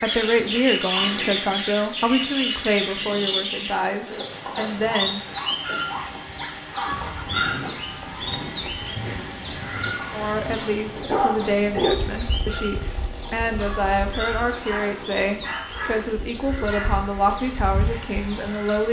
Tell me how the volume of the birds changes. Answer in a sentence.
The volume of the birds goes down.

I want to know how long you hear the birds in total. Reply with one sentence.
You can hear the birds for 19 seconds altogether.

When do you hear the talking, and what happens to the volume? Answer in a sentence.
The talking can be heard from 0.0 to 5.2 s, getting quieter; and from 10.1 to 18.8 s, at a steady volume.